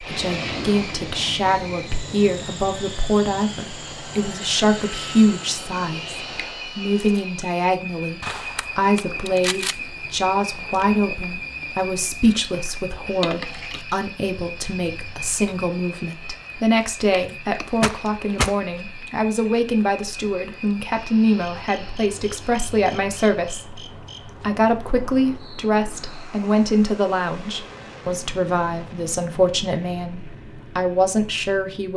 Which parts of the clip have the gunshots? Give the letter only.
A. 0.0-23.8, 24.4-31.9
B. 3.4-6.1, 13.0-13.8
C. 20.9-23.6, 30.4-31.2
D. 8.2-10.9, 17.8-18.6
D.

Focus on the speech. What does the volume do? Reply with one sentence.
The volume of the speech stays about the same.